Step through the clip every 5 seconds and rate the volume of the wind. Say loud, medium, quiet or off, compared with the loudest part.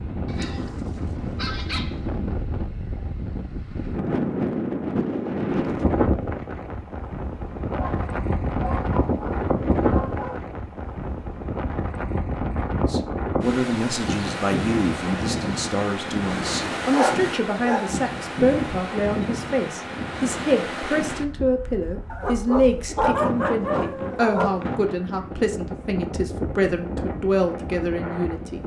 loud, loud, loud, loud, medium, medium.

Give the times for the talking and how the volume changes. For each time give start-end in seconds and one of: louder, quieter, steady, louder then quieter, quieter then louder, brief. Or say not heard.
12.8-28.6 steady.